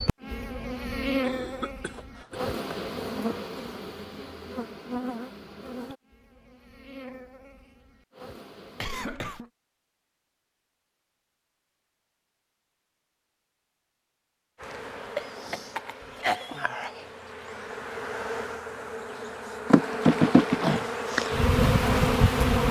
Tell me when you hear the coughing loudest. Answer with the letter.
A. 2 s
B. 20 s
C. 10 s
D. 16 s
D.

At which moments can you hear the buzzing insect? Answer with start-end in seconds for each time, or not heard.
0.0-9.2, 14.6-22.6.